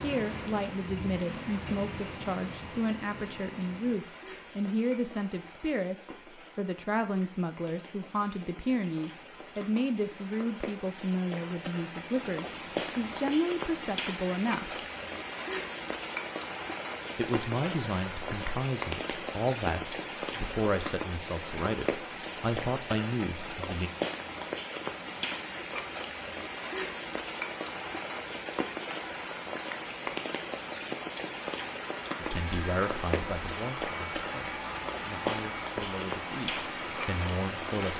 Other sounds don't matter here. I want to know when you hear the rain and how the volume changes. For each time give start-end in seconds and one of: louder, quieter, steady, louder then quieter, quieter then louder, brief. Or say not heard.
0.0-37.9 louder.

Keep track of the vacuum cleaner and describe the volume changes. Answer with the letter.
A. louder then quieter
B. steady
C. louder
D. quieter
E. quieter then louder
B.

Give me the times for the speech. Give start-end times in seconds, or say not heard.
0.0-14.8, 17.1-23.9, 32.1-37.9.